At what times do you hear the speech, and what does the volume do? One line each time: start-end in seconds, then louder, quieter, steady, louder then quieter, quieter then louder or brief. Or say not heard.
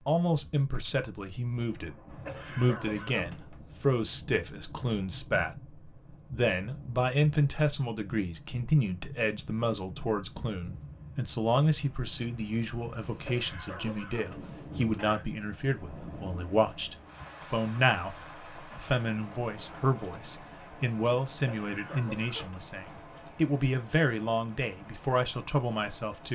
0.1-26.3 steady.